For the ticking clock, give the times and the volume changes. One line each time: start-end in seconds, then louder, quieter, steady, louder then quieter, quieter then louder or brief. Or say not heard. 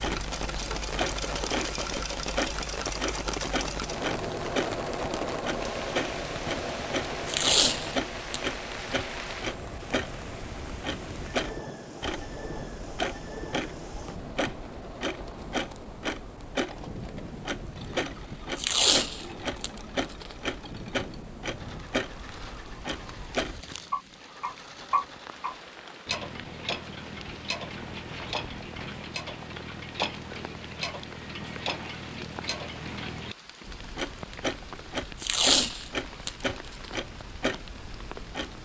0.0-38.6 steady.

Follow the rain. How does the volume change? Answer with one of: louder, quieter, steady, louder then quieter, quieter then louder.
quieter.